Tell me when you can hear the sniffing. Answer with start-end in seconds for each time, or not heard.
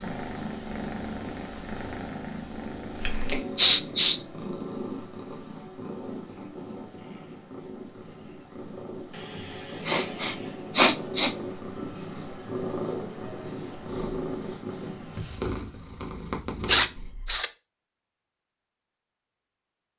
3.5-4.2, 9.8-11.3, 16.6-17.5.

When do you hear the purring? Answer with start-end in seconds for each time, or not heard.
0.0-17.4.